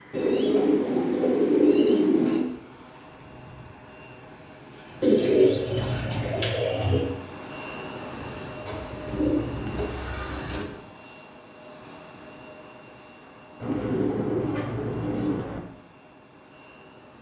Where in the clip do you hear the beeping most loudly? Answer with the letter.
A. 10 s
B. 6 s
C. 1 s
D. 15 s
B.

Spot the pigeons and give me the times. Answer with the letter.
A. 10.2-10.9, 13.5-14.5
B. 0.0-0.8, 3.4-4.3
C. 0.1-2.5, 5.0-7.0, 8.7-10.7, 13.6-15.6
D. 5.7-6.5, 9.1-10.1
C.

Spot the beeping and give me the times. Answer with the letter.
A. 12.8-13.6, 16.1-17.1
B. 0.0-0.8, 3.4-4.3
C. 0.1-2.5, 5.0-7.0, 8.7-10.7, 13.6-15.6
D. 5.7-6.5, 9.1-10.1
D.